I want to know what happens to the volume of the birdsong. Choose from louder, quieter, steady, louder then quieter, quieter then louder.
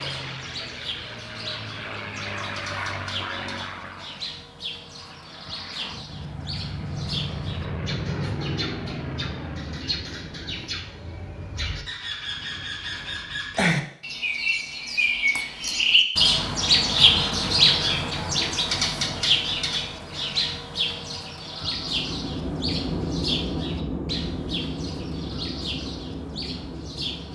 louder then quieter.